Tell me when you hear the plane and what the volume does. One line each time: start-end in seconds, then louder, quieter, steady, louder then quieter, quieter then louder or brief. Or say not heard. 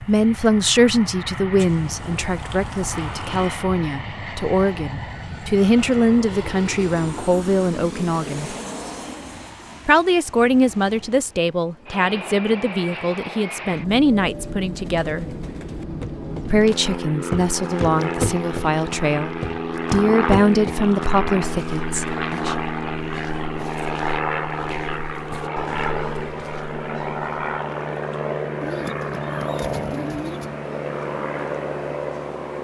0.0-32.5 louder.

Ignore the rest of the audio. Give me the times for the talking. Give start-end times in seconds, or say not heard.
0.0-8.6, 9.8-15.2, 16.4-22.6.